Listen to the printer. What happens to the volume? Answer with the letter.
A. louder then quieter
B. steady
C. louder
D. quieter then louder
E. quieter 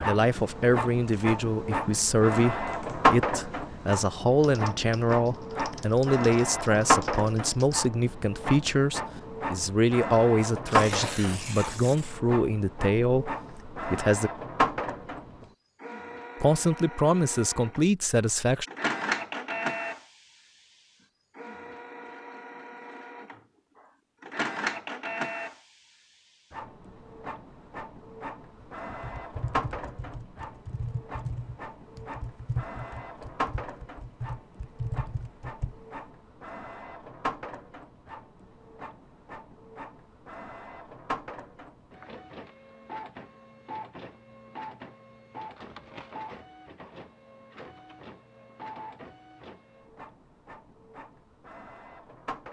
E.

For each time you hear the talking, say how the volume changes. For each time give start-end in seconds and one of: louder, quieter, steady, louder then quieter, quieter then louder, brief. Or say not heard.
0.0-14.3 steady
16.4-18.6 brief.